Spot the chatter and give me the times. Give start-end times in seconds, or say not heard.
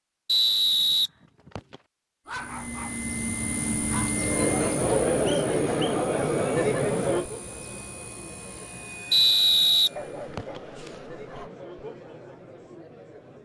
4.2-13.4.